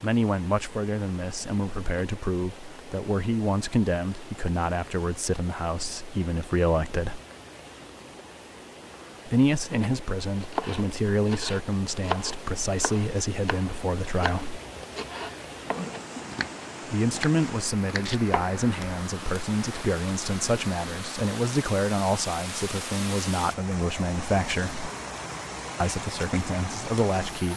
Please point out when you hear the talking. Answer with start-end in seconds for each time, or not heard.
0.0-7.2, 9.2-14.6, 16.9-24.9, 25.8-27.5.